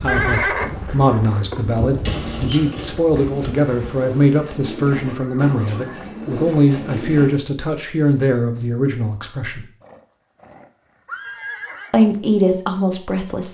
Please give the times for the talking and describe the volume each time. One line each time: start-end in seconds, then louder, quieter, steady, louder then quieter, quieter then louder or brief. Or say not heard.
0.0-9.7 steady
11.9-13.5 brief.